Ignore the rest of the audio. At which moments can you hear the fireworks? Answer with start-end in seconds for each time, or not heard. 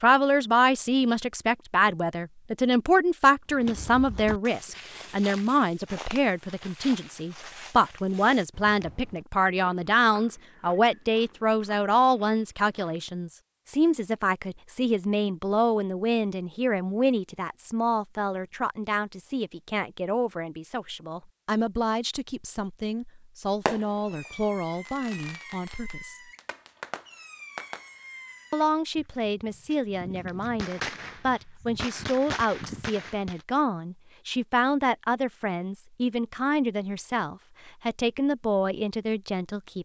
23.6-33.5.